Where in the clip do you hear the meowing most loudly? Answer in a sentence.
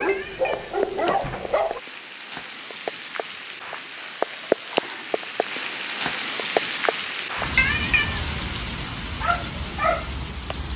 The loudest moment of the meowing is at 8 seconds.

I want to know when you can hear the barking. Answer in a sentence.
You can hear the barking from 0.0 to 1.8 s and from 9.2 to 10.7 s.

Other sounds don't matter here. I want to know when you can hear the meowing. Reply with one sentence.
You can hear the meowing from 0.1 to 1.6 s and from 7.5 to 8.2 s.